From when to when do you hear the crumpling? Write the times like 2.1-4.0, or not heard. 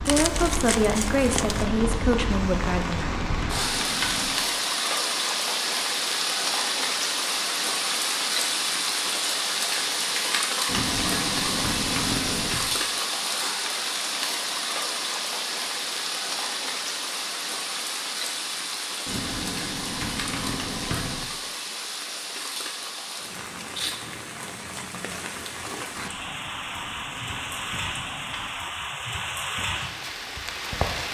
0.1-1.6.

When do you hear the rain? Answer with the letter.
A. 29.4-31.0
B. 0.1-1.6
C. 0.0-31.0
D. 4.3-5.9
C.